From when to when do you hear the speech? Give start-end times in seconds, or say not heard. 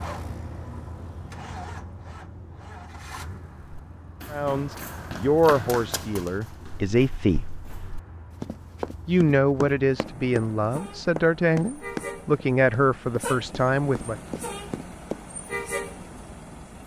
4.3-7.5, 9.1-14.2.